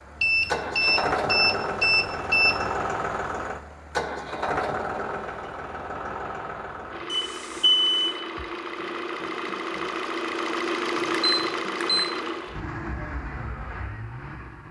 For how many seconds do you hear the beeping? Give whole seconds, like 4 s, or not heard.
4 s.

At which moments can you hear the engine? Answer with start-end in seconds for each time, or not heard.
0.0-14.6.